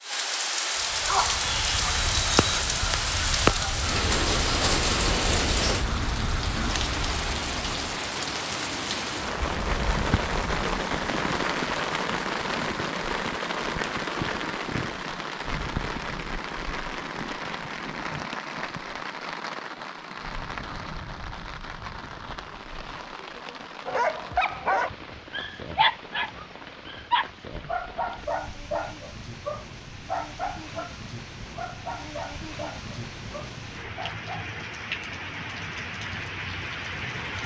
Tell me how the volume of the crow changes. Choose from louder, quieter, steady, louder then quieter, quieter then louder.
louder then quieter.